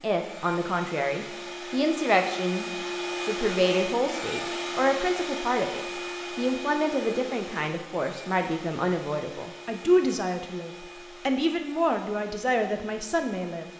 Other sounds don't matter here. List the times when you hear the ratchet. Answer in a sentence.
The ratchet can't be heard in this clip.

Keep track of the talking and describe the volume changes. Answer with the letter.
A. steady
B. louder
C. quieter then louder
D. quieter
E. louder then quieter
A.